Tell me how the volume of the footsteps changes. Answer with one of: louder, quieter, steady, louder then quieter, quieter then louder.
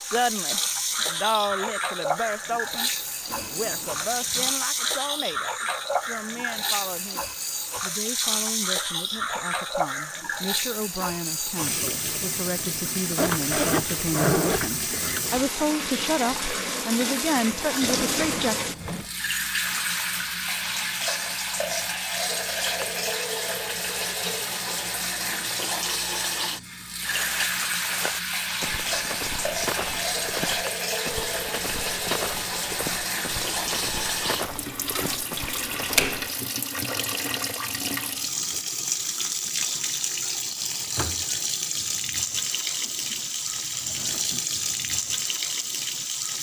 steady.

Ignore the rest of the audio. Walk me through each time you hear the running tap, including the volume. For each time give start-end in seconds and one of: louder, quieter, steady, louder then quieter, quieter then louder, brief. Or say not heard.
0.0-46.3 steady.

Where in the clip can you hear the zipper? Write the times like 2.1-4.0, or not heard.
13.2-15.2.